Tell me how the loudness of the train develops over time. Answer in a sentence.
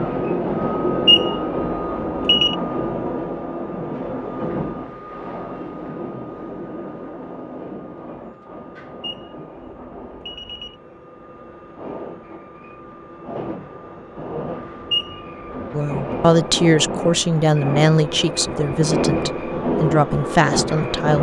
The loudness of the train goes down, then up.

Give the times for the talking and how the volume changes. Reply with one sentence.
You can hear the talking from 15.7 to 21.1 s, getting quieter then louder.